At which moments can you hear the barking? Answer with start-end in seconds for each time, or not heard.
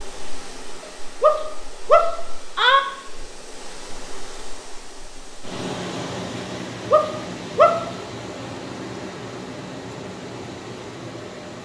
1.2-2.8, 6.9-7.8.